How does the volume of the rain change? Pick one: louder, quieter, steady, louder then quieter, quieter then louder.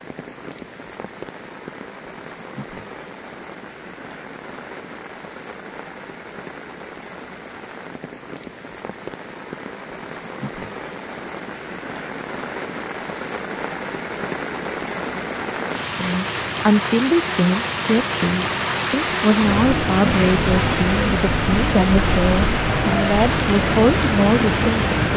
louder.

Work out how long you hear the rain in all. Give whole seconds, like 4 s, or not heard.
25 s.